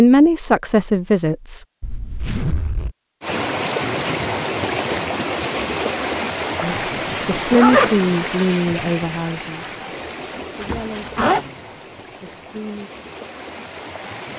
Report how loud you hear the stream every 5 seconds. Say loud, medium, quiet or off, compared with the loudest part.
loud, loud, quiet.